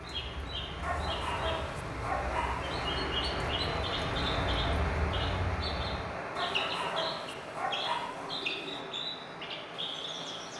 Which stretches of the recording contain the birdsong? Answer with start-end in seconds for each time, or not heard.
0.0-10.5.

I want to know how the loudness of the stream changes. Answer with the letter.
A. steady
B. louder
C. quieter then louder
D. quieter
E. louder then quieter
E.